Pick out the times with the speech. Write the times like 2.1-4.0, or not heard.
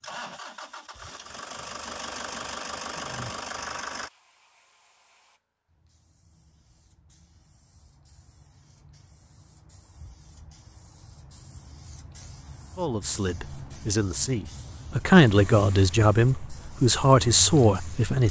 12.8-18.2.